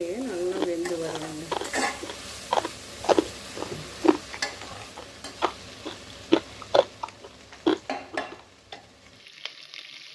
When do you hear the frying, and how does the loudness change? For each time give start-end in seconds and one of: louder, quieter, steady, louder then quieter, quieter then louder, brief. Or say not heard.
0.0-10.1 quieter then louder.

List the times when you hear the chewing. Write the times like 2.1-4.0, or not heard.
0.5-8.3.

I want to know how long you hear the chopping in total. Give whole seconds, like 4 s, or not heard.
not heard.